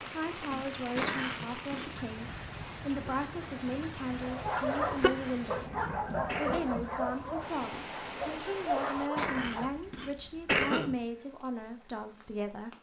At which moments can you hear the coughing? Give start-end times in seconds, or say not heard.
0.8-1.9, 5.0-6.8, 8.9-10.9.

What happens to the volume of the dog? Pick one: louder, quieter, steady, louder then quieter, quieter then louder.
quieter then louder.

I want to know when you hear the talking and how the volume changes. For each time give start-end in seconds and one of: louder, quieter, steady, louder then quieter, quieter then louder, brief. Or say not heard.
0.1-12.7 steady.